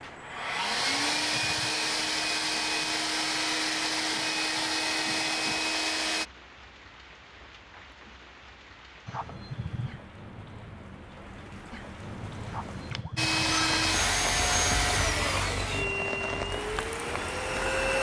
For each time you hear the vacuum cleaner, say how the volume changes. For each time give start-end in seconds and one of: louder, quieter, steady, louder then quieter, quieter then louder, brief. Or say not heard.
0.0-6.2 steady
13.2-17.9 quieter.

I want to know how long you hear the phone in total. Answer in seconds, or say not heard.
3 s.